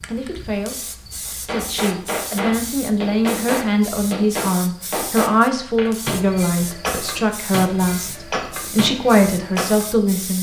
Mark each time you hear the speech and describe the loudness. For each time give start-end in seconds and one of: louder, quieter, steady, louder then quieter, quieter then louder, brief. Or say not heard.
0.0-10.3 louder.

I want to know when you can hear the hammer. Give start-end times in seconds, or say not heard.
1.2-9.8.